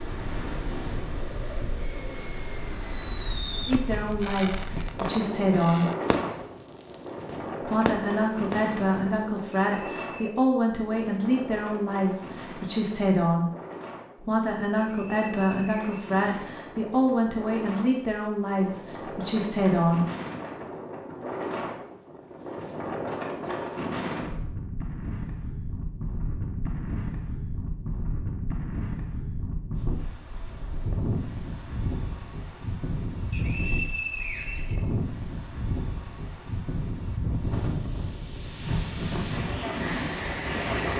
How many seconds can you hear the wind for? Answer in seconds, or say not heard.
41 s.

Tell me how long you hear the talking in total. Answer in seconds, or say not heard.
14 s.